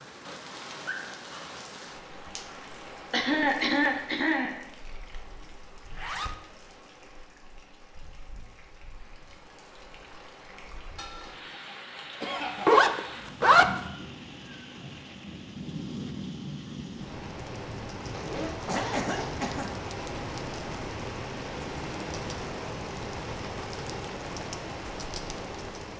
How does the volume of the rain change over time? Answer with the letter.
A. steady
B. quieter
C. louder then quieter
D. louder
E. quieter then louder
E.